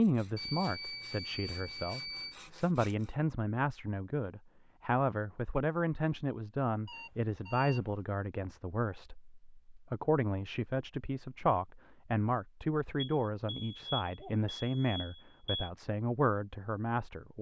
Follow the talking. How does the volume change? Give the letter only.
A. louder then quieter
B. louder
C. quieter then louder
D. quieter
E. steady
E.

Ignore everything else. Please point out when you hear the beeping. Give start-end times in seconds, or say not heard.
0.3-2.4, 6.8-8.0, 12.9-15.7.